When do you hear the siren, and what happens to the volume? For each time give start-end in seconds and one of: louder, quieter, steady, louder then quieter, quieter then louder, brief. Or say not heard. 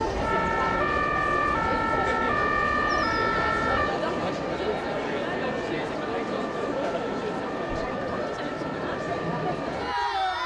0.0-10.4 quieter.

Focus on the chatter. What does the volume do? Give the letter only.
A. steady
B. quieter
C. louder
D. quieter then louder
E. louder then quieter
A.